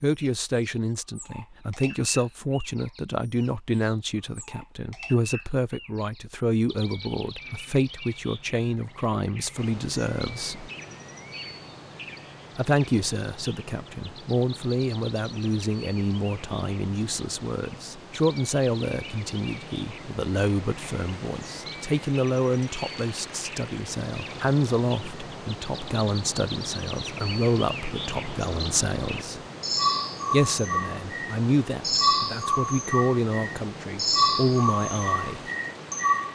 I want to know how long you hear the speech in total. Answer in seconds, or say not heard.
33 s.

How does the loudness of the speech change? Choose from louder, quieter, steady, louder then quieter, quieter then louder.
steady.